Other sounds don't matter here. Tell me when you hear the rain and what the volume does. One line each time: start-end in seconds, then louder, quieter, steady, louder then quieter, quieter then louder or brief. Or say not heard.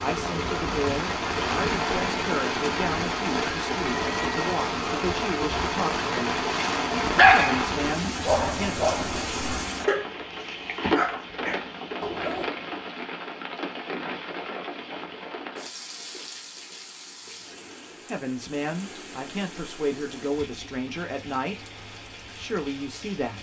0.0-23.3 quieter.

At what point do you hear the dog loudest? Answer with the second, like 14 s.
7 s.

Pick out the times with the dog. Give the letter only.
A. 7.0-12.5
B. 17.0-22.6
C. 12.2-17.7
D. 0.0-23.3
A.